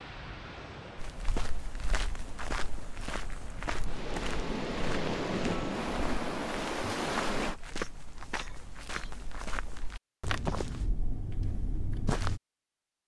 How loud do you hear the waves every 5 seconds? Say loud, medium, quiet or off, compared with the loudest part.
medium, loud, off.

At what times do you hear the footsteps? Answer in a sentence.
You can hear the footsteps from 0.9 to 12.4 s.